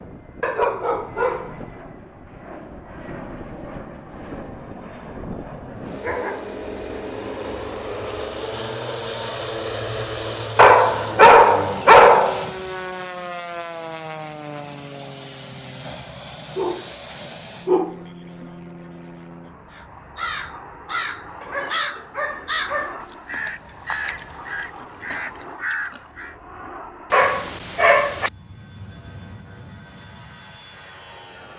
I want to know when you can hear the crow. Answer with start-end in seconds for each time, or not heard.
19.7-26.4.